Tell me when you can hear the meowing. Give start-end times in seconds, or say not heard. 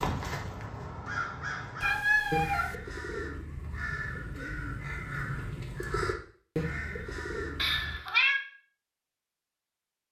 1.8-2.8, 7.5-8.4.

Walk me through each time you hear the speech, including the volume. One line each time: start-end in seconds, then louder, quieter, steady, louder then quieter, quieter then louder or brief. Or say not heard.
not heard.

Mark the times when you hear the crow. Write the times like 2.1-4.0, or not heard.
0.0-8.0.